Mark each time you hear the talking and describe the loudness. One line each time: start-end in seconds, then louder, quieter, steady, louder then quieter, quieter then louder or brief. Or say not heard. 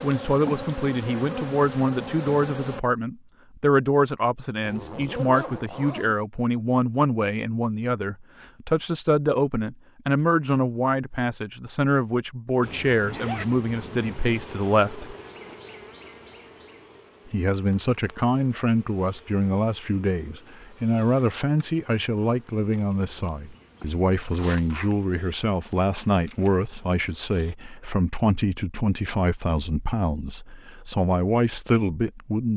0.0-15.2 steady
17.2-32.5 steady.